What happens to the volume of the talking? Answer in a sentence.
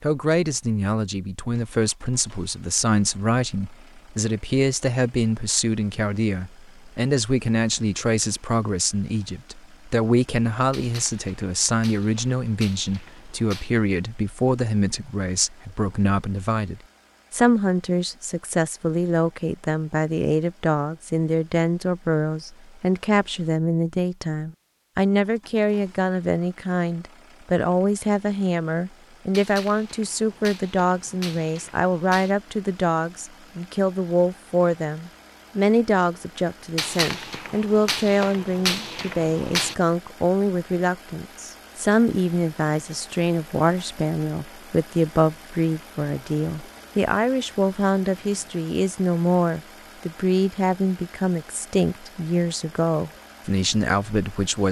The loudness of the talking stays about the same.